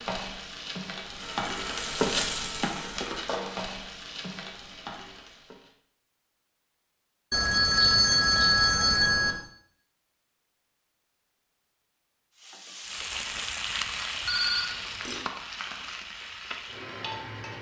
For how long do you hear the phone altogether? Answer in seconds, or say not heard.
5 s.